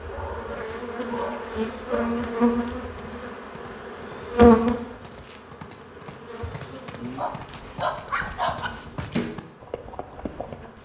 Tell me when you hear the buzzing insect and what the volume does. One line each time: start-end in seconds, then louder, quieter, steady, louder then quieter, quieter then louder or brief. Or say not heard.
0.0-10.8 louder then quieter.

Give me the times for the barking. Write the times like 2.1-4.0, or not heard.
0.1-2.1, 7.2-8.7.